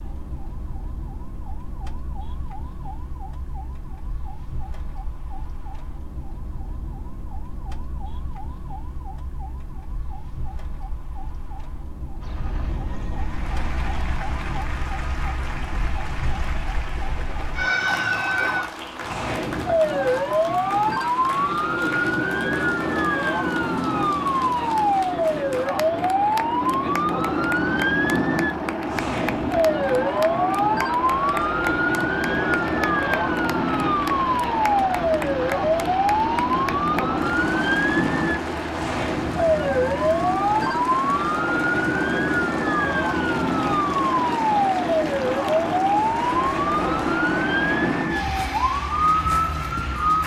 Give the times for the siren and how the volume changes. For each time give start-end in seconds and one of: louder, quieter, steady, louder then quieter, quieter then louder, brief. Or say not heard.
0.0-50.2 louder.